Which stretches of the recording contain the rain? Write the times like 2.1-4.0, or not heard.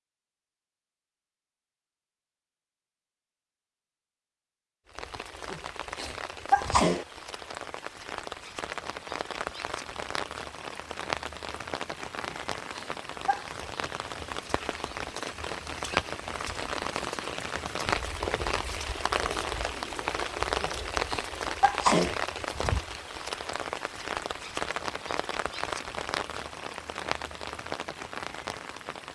4.8-29.1.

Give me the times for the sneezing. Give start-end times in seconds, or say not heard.
5.5-7.0, 12.2-13.6, 20.6-22.1.